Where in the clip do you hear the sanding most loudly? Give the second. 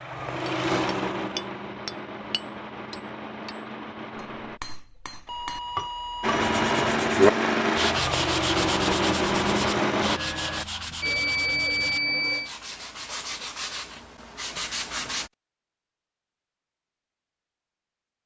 7 s.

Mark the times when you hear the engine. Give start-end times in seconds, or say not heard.
0.0-4.6, 6.2-10.2.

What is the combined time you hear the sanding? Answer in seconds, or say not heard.
9 s.